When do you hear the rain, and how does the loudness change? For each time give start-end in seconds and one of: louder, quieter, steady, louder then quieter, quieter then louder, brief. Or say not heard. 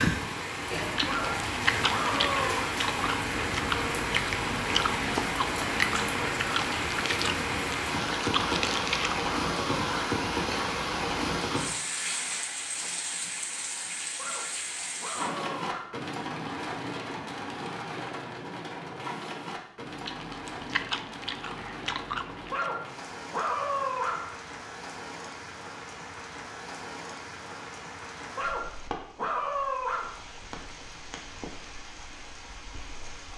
0.0-33.3 quieter.